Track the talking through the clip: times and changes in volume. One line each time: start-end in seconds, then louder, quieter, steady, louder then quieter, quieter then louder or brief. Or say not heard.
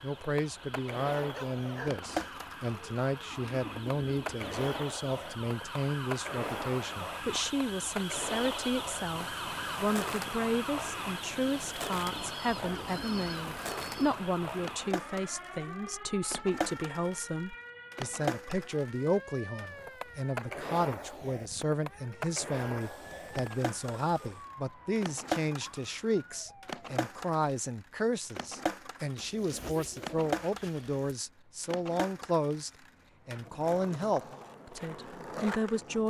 0.0-36.0 steady.